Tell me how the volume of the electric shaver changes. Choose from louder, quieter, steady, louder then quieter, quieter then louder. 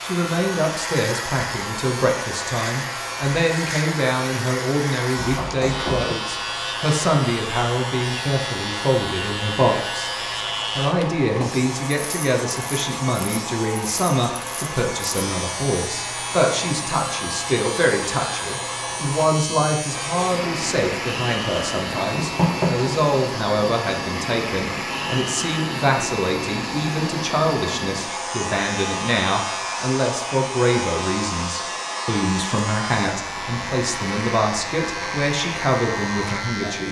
steady.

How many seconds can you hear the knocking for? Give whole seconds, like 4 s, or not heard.
2 s.